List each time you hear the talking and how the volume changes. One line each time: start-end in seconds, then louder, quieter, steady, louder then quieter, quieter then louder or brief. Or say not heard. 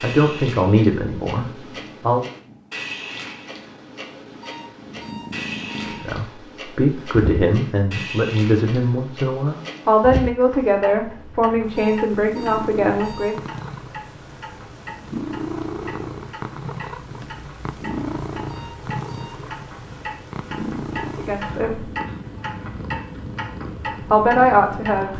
0.0-2.2 brief
5.8-13.4 steady
21.1-21.9 brief
24.0-25.1 brief.